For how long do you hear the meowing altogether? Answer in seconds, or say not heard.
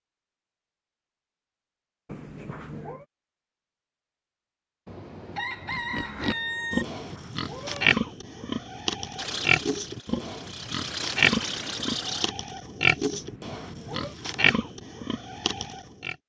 3 s.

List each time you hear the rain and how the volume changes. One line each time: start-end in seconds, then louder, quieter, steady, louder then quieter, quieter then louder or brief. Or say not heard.
not heard.